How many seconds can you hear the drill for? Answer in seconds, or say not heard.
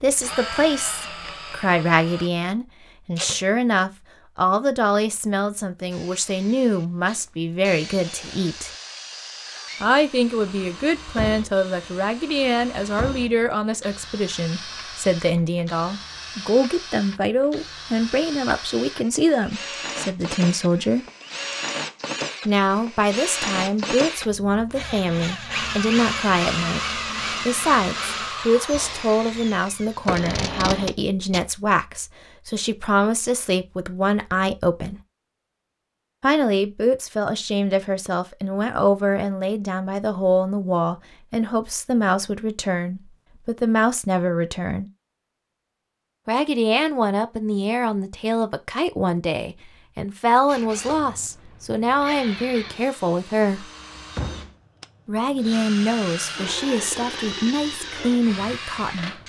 36 s.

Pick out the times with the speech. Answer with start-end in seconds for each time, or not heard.
0.0-8.7, 9.8-21.1, 22.4-35.0, 36.2-44.9, 46.2-53.7, 55.0-59.2.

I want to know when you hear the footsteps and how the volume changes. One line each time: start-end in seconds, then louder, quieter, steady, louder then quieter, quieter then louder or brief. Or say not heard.
not heard.